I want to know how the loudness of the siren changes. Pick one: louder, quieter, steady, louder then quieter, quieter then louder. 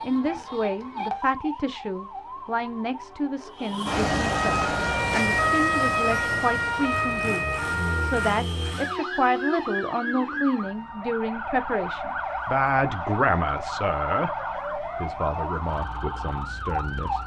louder then quieter.